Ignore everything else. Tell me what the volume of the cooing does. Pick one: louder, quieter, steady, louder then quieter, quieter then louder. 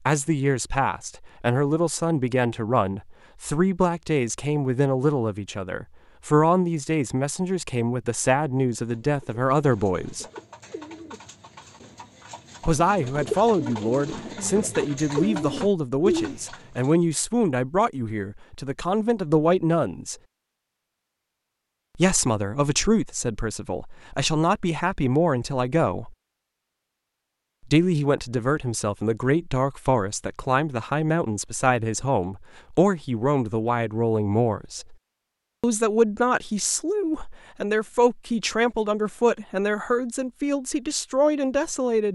louder.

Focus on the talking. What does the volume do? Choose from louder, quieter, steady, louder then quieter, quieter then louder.
steady.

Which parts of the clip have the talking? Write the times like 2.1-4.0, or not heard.
0.1-10.2, 12.7-20.1, 21.9-26.1, 27.6-35.0, 35.6-42.1.